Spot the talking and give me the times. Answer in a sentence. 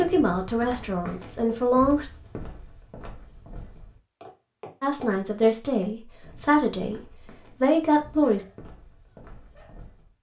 You can hear the talking from 0.0 to 2.1 s and from 4.8 to 8.4 s.